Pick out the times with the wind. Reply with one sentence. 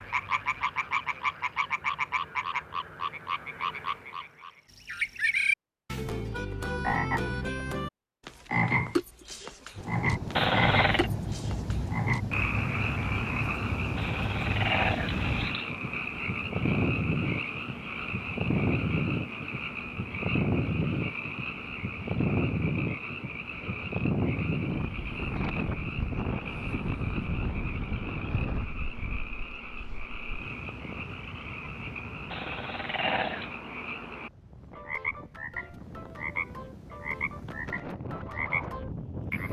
You can hear the wind from 9.8 to 39.4 s.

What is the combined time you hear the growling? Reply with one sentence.
The growling can be heard for 4 seconds in total.